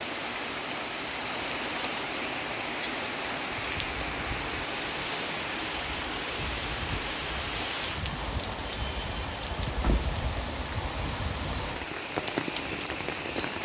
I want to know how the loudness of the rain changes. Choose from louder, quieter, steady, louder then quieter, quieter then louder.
steady.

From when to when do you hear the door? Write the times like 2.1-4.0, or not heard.
9.7-10.8.